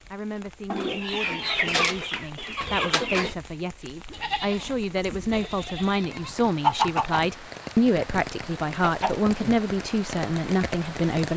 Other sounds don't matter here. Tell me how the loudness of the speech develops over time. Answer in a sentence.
The loudness of the speech goes up.